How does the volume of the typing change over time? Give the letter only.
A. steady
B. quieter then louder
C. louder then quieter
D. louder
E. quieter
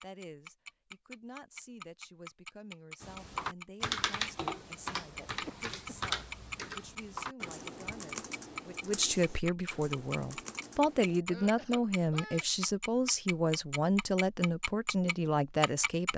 E.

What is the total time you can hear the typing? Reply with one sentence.
You can hear the typing for 8 seconds altogether.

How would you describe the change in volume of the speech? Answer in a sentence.
The volume of the speech goes up.